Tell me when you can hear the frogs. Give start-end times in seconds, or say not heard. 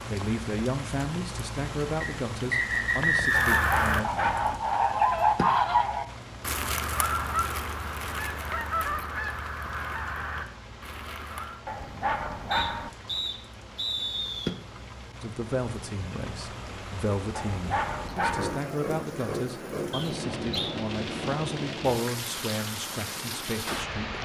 not heard.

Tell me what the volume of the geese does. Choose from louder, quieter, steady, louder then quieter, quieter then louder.
quieter.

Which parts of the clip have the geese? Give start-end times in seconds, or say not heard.
3.2-11.6.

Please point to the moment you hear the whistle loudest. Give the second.
3 s.